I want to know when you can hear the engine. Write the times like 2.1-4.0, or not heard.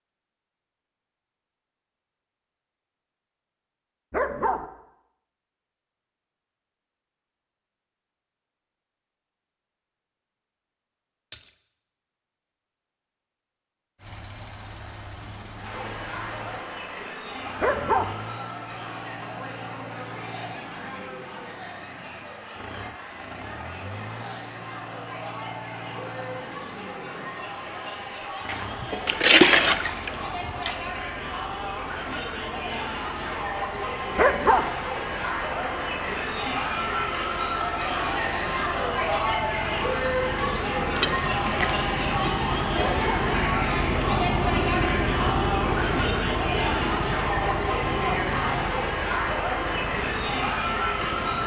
13.9-51.4.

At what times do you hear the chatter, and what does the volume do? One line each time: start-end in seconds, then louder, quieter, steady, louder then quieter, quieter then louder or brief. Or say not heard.
15.6-51.4 louder.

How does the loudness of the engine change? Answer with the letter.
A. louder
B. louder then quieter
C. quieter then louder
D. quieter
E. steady
A.